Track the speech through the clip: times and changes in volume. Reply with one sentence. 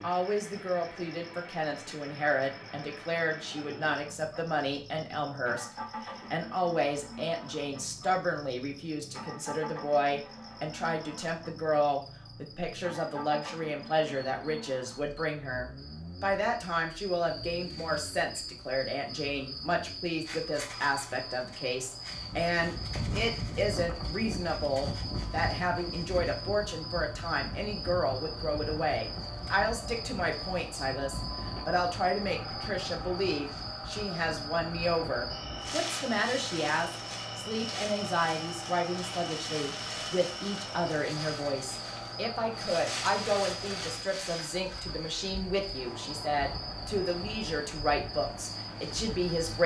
The speech can be heard from 0.0 to 49.6 s, at a steady volume.